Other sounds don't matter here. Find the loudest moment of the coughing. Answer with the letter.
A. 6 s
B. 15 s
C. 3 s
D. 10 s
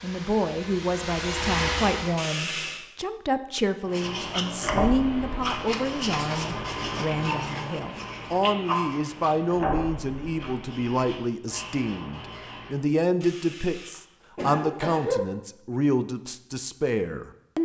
B.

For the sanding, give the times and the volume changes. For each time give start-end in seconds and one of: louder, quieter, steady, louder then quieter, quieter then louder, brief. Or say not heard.
3.9-12.8 quieter.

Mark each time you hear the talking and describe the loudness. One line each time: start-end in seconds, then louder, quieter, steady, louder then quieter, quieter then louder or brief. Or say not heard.
0.0-17.6 steady.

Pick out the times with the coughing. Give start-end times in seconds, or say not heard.
2.1-2.8, 13.2-15.2.